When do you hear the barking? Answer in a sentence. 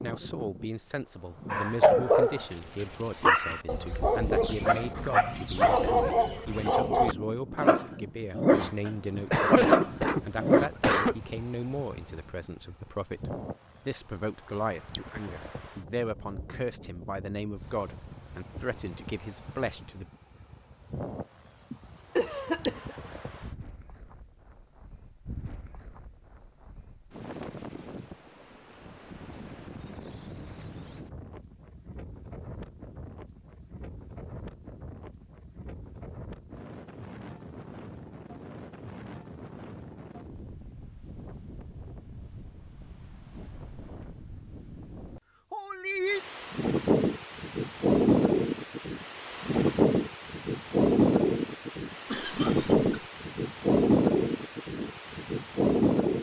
The barking can be heard from 1.5 to 10.7 s.